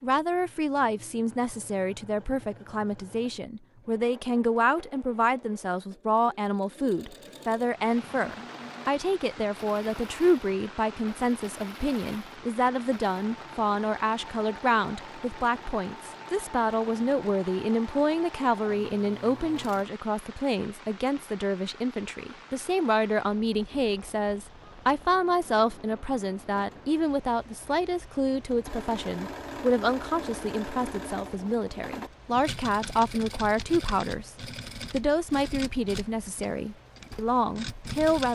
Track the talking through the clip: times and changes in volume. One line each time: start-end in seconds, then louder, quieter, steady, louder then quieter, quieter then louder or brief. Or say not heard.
0.0-38.3 steady.